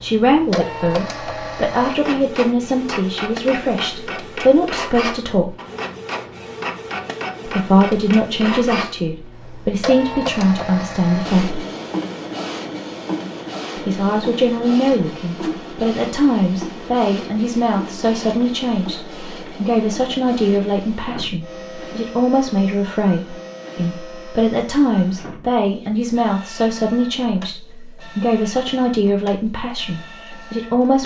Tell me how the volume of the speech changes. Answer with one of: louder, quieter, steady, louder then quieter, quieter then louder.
steady.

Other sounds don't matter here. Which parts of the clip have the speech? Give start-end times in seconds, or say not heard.
0.0-5.5, 7.5-11.6, 13.8-31.0.